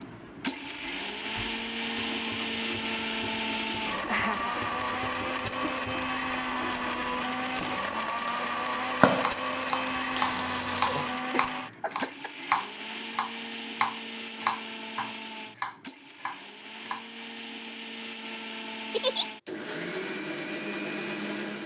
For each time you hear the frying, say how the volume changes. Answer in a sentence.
The frying can be heard from 0.0 to 11.2 s, getting louder.